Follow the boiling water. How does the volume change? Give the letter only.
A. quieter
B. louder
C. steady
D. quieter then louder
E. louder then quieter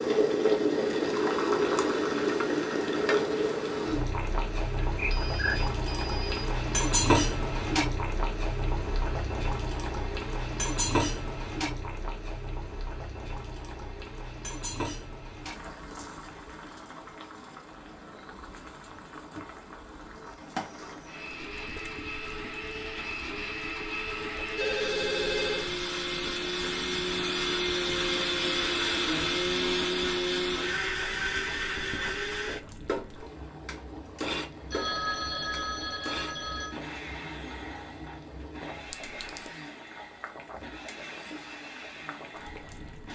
A.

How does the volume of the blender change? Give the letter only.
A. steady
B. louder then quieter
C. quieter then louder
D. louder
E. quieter
B.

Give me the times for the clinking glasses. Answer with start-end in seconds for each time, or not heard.
38.9-39.5.